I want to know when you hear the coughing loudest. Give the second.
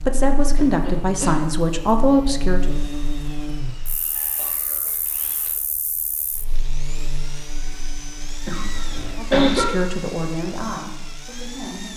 9 s.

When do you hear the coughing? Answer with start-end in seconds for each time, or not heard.
0.6-1.4, 4.2-5.5, 8.4-9.7.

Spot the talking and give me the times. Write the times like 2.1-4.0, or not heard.
0.1-2.7, 9.2-11.9.